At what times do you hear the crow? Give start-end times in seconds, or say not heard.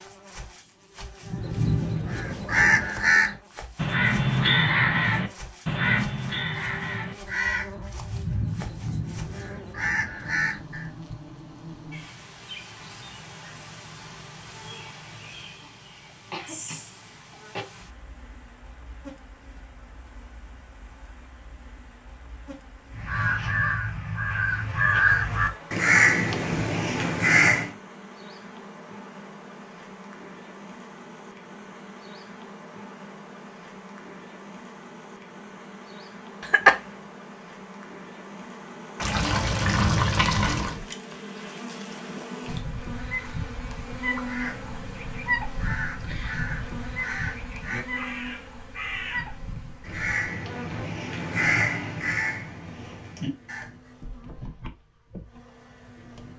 1.2-10.9, 22.9-27.7, 44.2-53.9.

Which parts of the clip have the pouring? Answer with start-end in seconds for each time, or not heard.
39.0-40.8.